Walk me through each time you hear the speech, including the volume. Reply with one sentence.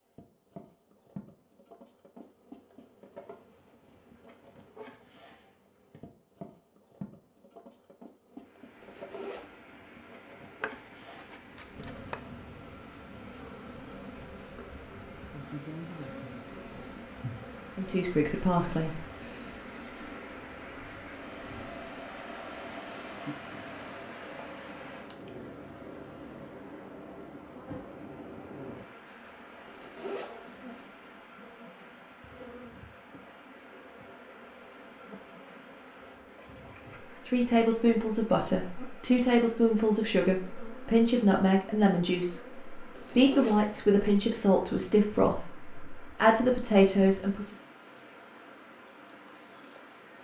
The speech can be heard briefly from 17.8 to 19.1 s; and from 37.2 to 47.5 s, at a steady volume.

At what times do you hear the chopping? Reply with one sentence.
The chopping can be heard from 10.6 to 12.2 s.